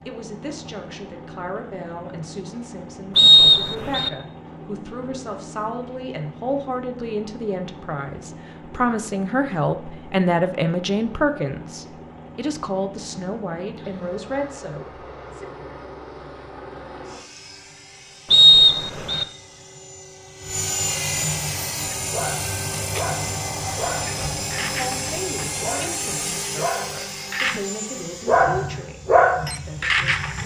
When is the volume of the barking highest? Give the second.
29 s.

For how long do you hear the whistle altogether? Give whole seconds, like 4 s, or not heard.
2 s.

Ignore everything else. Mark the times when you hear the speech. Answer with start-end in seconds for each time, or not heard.
0.0-15.4, 24.6-30.4.